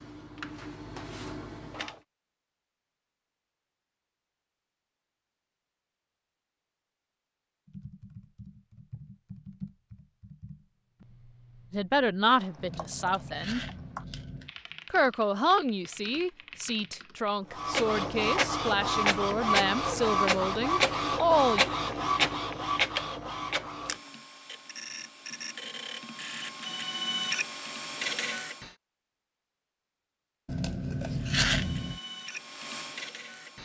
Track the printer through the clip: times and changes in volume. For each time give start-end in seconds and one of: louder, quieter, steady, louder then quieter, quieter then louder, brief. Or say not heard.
0.0-1.9 brief
17.5-28.7 quieter then louder
31.1-33.6 brief.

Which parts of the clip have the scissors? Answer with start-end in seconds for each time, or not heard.
12.6-14.5, 30.4-32.0.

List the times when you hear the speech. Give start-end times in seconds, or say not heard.
11.7-13.6, 14.9-21.6.